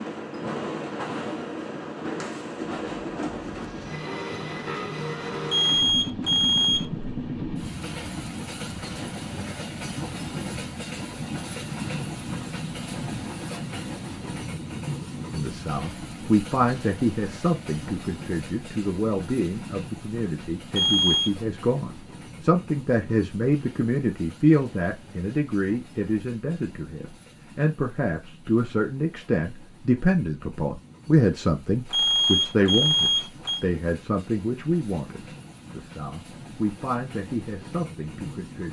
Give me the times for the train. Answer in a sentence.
The train can be heard from 0.0 to 38.6 s.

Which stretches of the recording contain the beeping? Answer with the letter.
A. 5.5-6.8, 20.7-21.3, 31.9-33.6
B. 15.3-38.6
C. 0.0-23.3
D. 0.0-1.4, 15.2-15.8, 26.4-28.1
A.